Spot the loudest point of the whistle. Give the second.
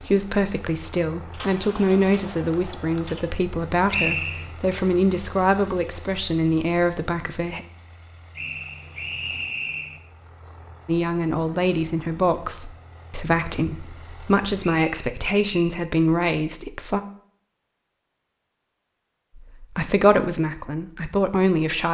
4 s.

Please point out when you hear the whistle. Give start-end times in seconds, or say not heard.
3.9-4.5, 8.3-10.0, 14.8-15.7.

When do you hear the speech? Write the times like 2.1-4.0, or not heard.
0.0-7.7, 10.8-17.0, 19.4-21.8.